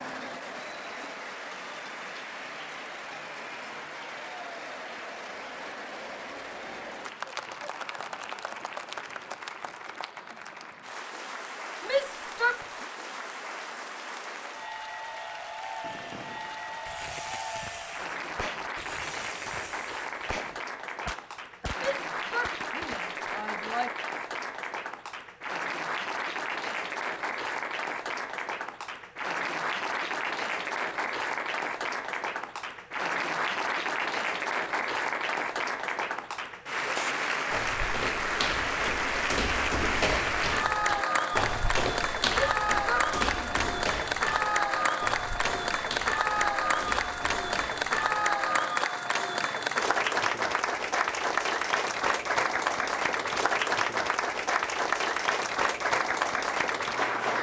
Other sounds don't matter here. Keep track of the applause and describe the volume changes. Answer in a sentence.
The loudness of the applause goes up.